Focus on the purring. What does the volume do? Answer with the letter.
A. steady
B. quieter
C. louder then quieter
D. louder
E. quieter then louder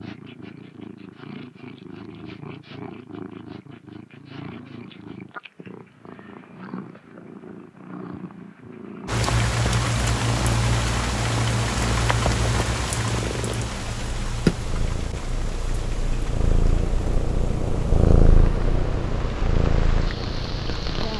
D.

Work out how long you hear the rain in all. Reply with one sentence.
You can hear the rain for 12 seconds altogether.